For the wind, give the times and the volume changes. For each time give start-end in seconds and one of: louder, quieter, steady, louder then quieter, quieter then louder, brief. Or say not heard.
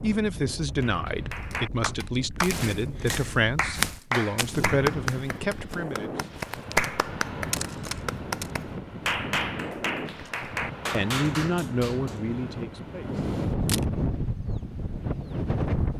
0.0-15.9 louder.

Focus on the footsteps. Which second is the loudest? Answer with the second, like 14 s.
4 s.